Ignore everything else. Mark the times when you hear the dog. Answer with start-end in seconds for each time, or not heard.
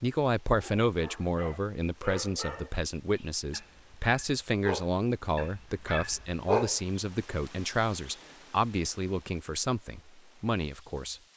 0.6-6.8.